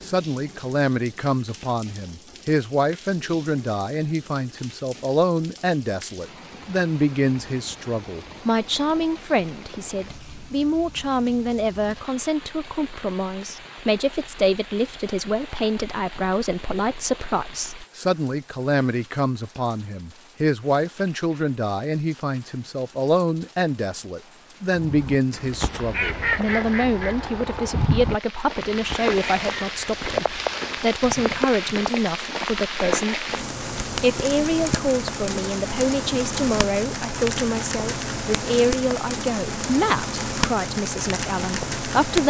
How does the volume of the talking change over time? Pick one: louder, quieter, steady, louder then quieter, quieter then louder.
steady.